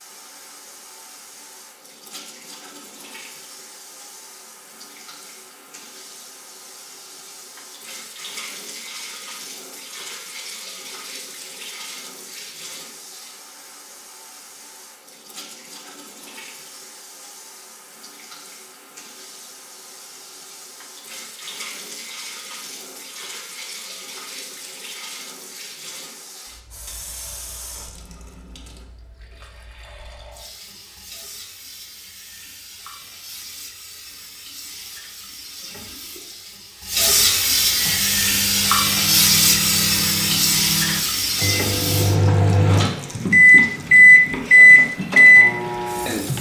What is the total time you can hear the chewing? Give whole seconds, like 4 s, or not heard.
not heard.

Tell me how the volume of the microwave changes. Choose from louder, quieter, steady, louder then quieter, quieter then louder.
louder.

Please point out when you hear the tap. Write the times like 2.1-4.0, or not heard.
0.0-46.3.